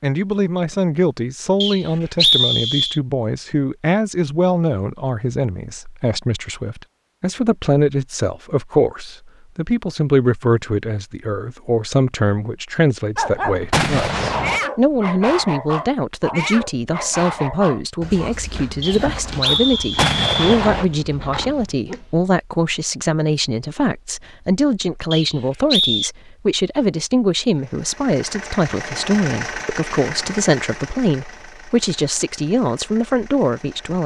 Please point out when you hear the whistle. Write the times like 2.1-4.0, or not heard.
1.6-3.0, 18.8-20.6, 25.1-26.1.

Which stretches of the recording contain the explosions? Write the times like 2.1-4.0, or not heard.
13.7-14.6, 19.9-20.9.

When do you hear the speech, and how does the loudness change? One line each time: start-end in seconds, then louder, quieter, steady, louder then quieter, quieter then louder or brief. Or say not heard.
0.0-34.0 steady.